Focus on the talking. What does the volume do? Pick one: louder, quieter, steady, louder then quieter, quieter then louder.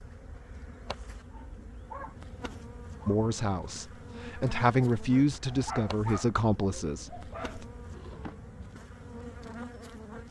louder then quieter.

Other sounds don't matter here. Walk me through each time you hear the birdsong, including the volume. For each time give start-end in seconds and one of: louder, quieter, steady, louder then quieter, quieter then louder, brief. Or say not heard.
not heard.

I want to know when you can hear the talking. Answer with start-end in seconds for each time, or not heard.
3.0-7.7.